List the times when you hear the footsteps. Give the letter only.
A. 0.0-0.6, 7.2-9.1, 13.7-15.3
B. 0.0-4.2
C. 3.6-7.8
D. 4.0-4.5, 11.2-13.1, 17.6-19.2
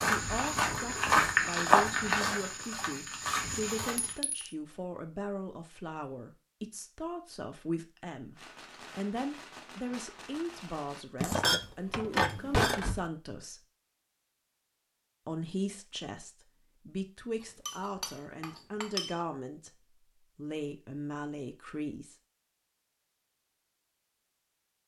B.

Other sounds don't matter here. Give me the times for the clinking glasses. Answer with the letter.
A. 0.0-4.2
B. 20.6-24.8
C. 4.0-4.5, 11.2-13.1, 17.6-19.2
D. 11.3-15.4
C.